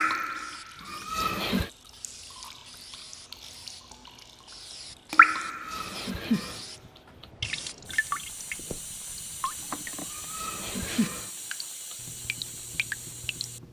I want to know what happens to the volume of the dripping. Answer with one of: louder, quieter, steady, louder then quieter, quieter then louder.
louder then quieter.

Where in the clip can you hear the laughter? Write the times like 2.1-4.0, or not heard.
0.8-1.7, 5.4-7.2, 10.1-11.3.